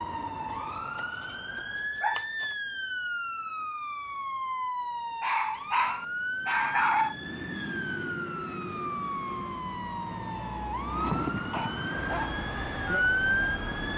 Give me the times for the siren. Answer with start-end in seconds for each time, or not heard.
0.0-13.9.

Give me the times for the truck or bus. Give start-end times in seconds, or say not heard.
11.9-13.9.